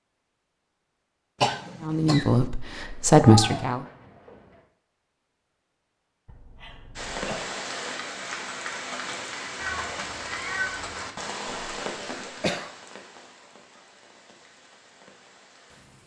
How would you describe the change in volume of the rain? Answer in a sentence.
The volume of the rain goes down.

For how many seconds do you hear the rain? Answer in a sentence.
The rain can be heard for 9 seconds in total.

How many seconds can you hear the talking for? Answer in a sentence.
The talking can be heard for 2 seconds in total.